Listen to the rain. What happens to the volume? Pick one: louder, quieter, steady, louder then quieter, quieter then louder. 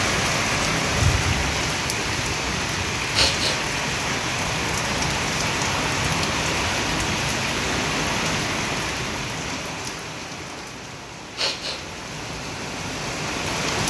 quieter.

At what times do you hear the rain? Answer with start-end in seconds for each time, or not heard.
0.0-13.8.